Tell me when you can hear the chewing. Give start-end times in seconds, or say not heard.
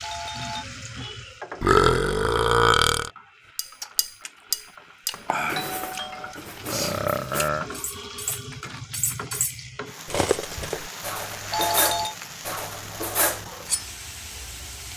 3.8-9.0.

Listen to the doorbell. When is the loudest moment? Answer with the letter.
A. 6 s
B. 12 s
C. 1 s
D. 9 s
B.